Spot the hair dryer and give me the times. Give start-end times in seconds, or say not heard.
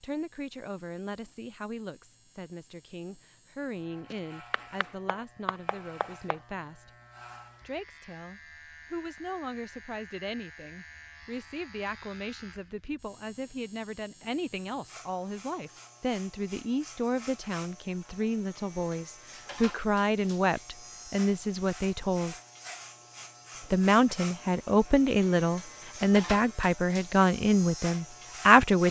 not heard.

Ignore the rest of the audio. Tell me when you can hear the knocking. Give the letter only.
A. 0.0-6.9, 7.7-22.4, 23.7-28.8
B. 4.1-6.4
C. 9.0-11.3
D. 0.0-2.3
B.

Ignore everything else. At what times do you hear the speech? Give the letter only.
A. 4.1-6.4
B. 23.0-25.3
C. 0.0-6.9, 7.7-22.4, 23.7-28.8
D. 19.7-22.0
C.